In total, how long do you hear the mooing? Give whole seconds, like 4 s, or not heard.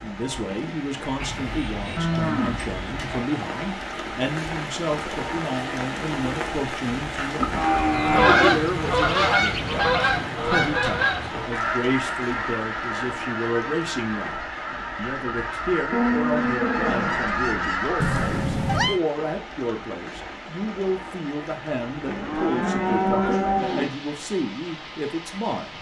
7 s.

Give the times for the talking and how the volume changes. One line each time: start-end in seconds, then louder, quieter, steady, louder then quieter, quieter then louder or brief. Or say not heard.
0.0-25.7 steady.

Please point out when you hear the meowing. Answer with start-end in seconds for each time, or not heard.
18.0-19.0.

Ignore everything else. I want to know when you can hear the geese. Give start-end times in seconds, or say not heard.
7.8-18.5.